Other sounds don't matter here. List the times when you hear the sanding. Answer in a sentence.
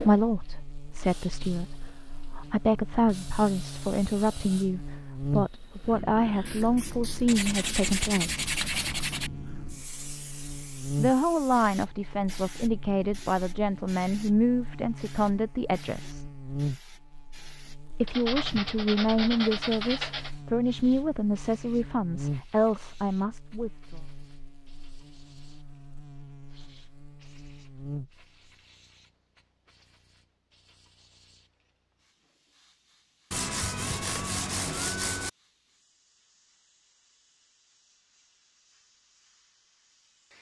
You can hear the sanding from 7.2 to 9.3 s, from 18.1 to 20.3 s and from 33.3 to 35.3 s.